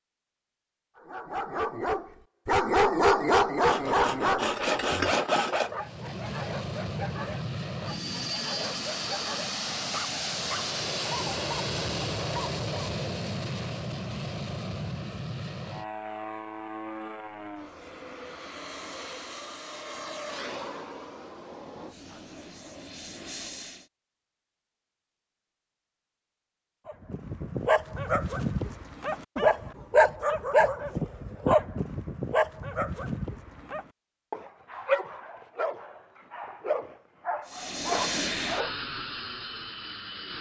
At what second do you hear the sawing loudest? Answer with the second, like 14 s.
5 s.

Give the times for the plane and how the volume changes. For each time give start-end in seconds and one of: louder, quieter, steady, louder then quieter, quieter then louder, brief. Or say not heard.
5.7-23.9 quieter
37.5-40.3 brief.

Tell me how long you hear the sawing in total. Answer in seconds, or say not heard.
2 s.